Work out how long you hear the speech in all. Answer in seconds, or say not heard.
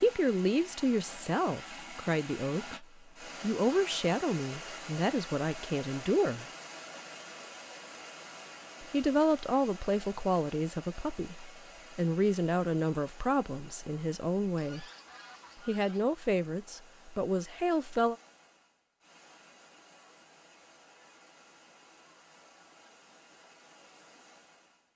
15 s.